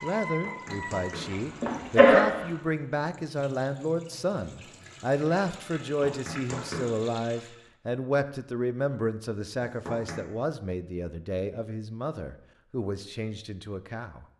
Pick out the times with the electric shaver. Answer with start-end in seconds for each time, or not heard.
not heard.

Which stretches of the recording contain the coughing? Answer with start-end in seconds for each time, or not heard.
1.2-2.5.